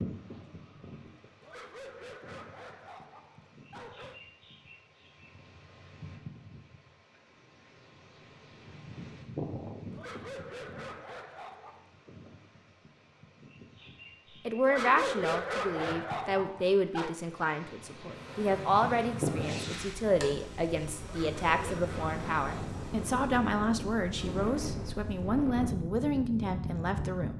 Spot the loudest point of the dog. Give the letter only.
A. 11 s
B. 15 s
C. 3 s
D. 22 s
B.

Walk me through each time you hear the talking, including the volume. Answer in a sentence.
The talking can be heard from 14.4 to 27.3 s, at a steady volume.